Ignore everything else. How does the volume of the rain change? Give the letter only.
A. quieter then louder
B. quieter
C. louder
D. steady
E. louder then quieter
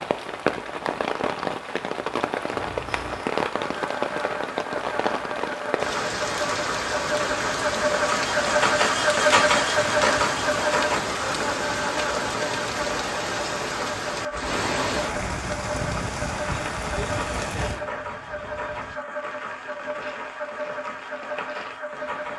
B.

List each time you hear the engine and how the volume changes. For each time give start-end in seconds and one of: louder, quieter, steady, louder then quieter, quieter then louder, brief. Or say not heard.
2.5-22.3 louder then quieter.